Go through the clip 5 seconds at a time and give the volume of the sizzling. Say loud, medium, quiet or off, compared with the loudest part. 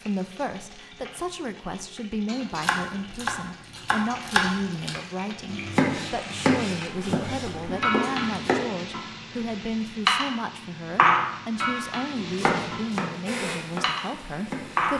quiet, medium, loud.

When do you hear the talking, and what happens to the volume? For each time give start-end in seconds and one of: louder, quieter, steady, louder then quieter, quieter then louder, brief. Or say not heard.
0.0-14.9 steady.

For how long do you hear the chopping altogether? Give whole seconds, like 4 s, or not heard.
9 s.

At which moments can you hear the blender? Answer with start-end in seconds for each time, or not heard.
13.2-14.9.